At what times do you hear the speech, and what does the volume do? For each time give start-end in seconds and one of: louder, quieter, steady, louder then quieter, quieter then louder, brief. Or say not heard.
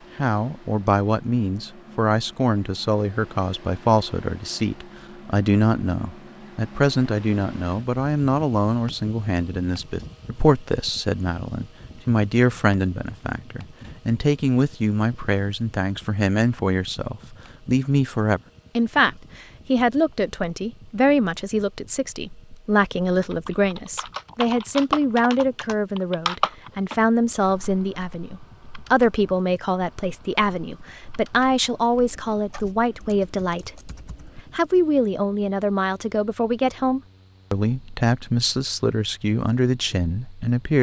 0.1-33.9 steady
34.5-40.7 steady.